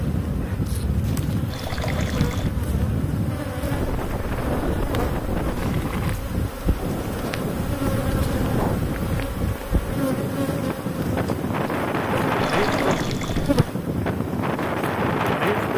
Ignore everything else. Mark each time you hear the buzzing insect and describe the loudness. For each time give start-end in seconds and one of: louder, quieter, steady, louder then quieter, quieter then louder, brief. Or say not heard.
0.0-15.7 steady.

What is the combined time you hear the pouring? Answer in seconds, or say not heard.
3 s.